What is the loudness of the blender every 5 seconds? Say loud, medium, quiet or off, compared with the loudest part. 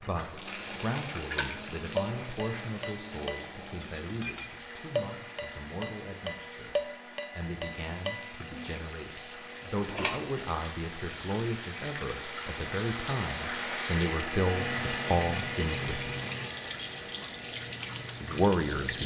medium, medium, loud, loud.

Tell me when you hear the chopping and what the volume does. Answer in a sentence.
You can't hear the chopping here.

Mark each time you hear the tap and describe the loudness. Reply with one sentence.
The tap can be heard from 0.0 to 19.0 s, getting quieter then louder.